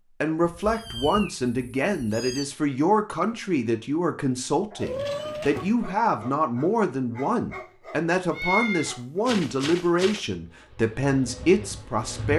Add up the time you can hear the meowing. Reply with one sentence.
You can hear the meowing for 5 seconds altogether.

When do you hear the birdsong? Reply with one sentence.
You can't hear the birdsong here.